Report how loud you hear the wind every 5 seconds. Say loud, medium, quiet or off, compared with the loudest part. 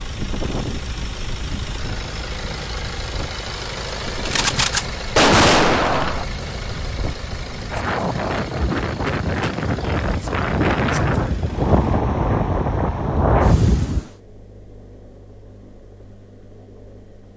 quiet, medium, loud, off.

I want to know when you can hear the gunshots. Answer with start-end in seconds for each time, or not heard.
4.2-6.2.